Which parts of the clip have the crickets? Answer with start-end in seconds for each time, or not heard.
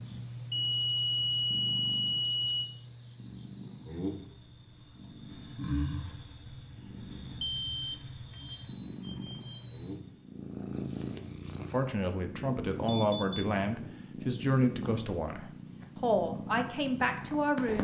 0.0-10.3.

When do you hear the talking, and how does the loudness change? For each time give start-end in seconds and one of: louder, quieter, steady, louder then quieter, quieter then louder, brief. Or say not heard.
11.6-17.7 steady.